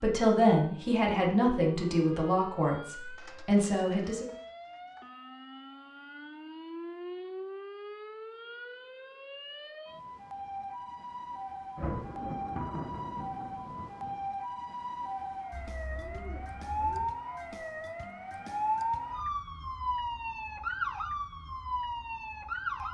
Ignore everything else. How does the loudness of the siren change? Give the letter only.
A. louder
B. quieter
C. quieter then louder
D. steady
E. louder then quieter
A.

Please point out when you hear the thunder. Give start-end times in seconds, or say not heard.
11.8-14.2.